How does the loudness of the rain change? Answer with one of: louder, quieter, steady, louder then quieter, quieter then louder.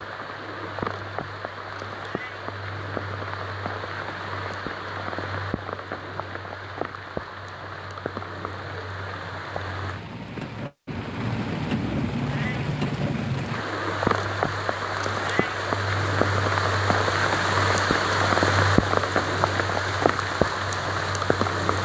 louder.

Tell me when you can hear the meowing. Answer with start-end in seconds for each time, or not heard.
2.0-2.5, 12.2-12.7, 15.2-15.7.